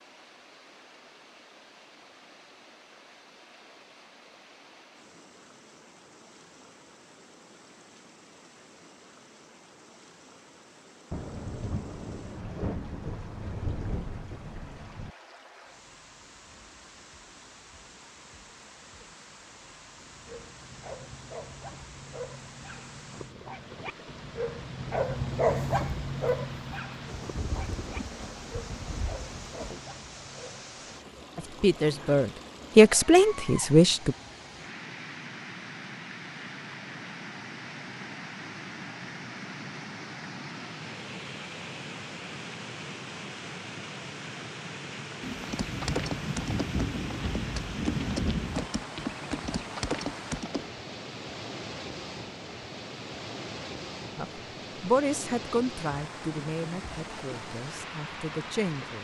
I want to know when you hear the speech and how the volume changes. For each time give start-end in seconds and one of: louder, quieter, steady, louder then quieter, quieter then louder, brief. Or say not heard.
31.4-34.1 brief
54.1-59.0 quieter then louder.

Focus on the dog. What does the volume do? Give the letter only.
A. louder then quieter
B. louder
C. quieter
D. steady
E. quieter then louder
A.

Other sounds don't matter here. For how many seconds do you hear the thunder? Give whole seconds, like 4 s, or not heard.
10 s.